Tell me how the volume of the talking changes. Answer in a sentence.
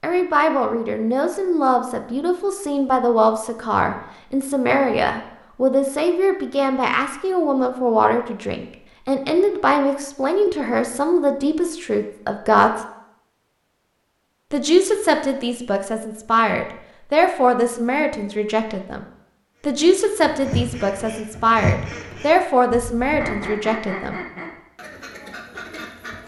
The volume of the talking stays about the same.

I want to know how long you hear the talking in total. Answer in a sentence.
You can hear the talking for 22 seconds altogether.